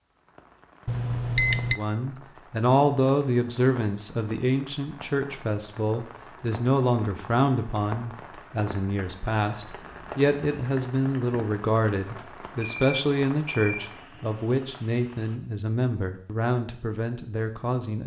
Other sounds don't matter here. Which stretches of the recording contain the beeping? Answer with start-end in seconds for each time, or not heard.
0.8-1.8, 12.2-14.1.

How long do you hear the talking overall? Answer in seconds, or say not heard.
16 s.